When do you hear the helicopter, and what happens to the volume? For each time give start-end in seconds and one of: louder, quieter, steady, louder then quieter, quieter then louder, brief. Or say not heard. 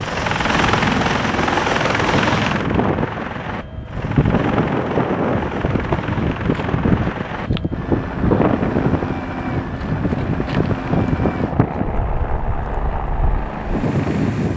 0.0-14.5 quieter.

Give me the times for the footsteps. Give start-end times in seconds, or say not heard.
not heard.